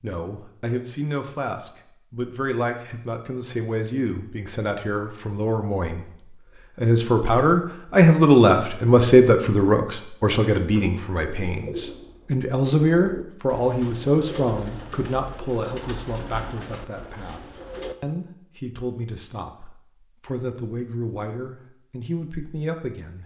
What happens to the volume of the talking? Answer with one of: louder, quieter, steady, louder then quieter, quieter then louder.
louder then quieter.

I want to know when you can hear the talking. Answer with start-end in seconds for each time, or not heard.
0.0-23.2.